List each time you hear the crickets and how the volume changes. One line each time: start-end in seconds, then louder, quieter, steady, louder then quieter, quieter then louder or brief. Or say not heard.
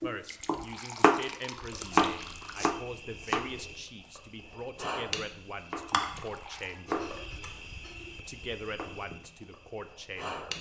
1.6-10.5 louder then quieter.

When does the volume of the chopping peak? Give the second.
2 s.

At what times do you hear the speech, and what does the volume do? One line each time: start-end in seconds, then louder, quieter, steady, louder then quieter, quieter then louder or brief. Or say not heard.
0.0-7.1 steady
8.2-10.5 brief.